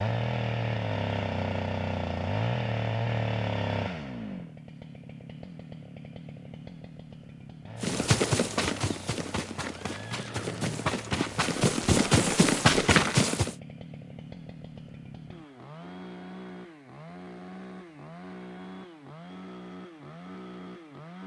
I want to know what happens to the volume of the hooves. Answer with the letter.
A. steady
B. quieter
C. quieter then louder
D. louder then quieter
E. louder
C.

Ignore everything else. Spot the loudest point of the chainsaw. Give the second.
3 s.